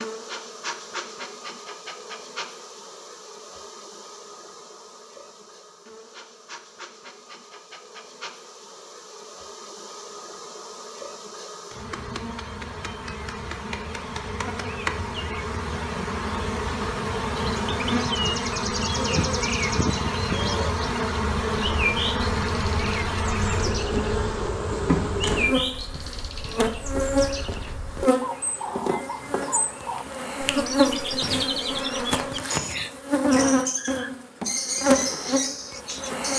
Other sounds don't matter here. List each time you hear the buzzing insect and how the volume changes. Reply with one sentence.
You can hear the buzzing insect from 0.0 to 36.3 s, getting louder.